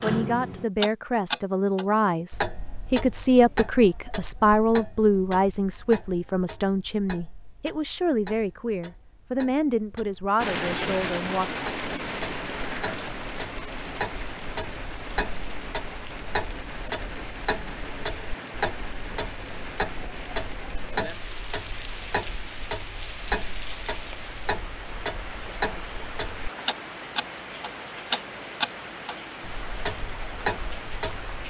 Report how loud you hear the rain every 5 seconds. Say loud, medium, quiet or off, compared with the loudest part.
off, off, loud, medium, medium, medium, medium.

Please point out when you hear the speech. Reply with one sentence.
The speech can be heard from 0.0 to 11.5 s.